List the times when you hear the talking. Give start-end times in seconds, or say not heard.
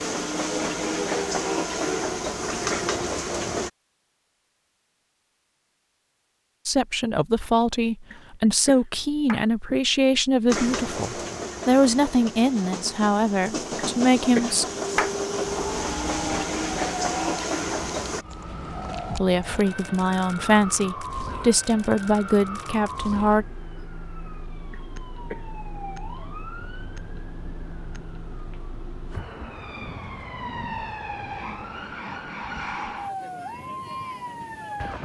6.7-14.7, 19.1-23.4.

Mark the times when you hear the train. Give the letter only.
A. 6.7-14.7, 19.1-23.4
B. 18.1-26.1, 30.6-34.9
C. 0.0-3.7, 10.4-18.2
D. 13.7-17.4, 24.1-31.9
C.